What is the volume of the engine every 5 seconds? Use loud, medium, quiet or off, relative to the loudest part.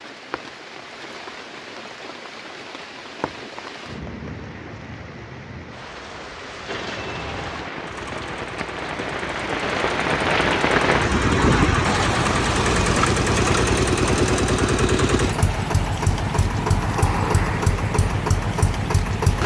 off, quiet, loud, loud.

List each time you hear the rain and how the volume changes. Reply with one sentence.
You can hear the rain from 0.0 to 19.4 s, getting louder then quieter.